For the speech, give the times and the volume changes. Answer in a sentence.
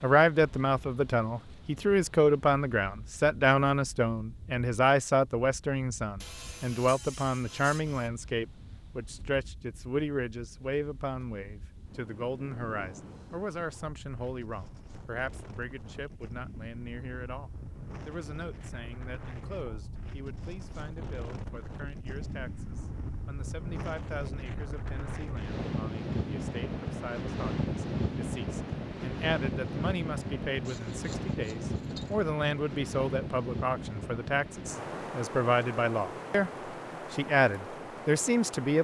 The speech can be heard from 0.0 to 36.5 s, getting quieter then louder; and briefly from 37.1 to 38.7 s.